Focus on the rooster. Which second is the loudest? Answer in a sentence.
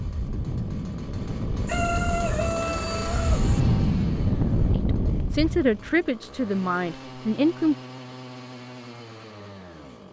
The volume of the rooster peaks at 2 seconds.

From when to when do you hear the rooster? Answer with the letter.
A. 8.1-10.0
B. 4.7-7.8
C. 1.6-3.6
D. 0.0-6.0
C.